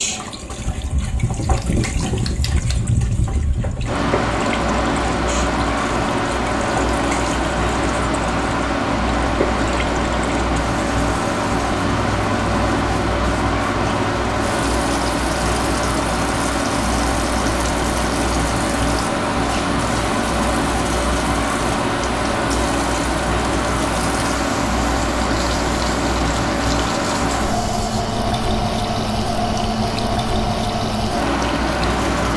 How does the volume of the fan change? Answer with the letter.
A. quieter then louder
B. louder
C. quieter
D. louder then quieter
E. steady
E.